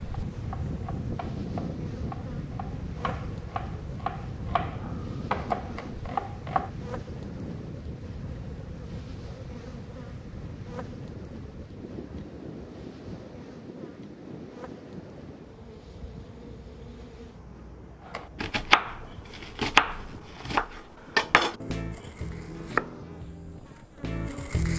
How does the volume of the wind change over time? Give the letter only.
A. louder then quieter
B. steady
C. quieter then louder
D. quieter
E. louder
D.